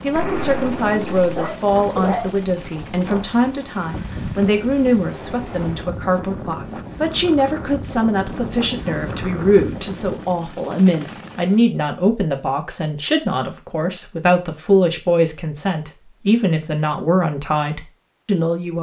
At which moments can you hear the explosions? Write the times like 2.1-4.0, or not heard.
0.1-1.3.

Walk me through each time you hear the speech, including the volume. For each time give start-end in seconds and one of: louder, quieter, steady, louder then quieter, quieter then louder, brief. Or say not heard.
0.0-18.7 steady.